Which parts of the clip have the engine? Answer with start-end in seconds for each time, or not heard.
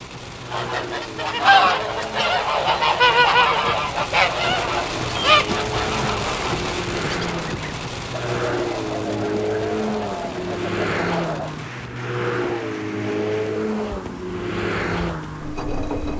0.0-16.1.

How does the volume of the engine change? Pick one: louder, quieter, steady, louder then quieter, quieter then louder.
louder.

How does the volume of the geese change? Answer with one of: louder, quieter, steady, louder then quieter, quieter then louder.
quieter.